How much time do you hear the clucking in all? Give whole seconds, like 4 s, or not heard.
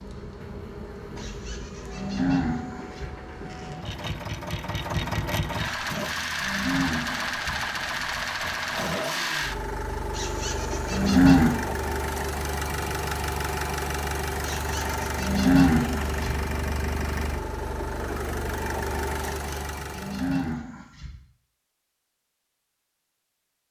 not heard.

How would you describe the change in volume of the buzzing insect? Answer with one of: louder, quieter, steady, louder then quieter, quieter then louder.
steady.